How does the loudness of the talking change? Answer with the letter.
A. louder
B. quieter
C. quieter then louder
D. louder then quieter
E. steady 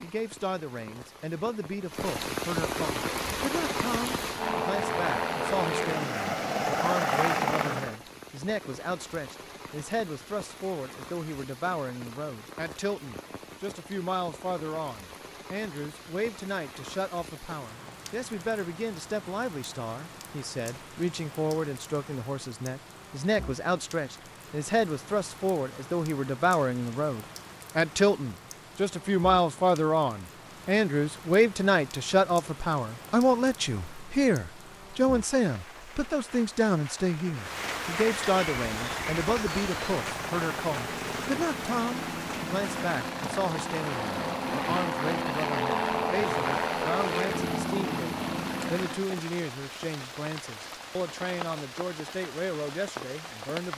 D.